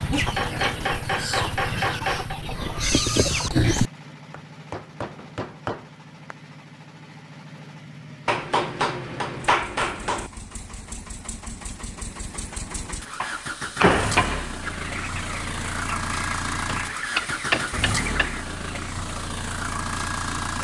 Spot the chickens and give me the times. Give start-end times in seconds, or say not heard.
0.0-3.9, 14.6-18.4.